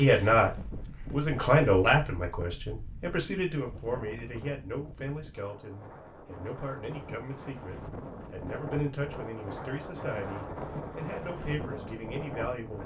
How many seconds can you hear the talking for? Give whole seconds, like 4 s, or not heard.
13 s.